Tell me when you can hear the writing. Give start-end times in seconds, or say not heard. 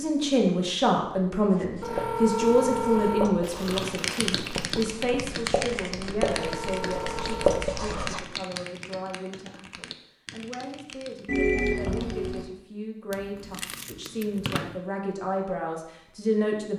1.5-8.2.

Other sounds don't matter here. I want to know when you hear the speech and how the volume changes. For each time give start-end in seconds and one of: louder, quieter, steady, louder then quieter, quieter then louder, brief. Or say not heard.
0.0-16.7 quieter then louder.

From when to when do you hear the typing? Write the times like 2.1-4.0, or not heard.
3.6-12.4.